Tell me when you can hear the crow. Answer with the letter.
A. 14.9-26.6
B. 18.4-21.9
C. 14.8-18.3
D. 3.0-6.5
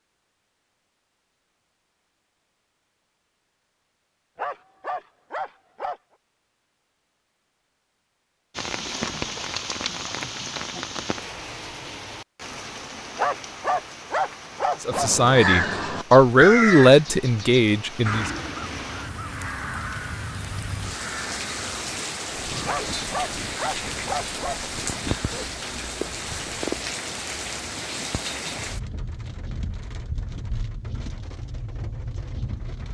A.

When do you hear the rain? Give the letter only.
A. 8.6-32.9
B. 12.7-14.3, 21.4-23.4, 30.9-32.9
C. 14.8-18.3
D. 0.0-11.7
A.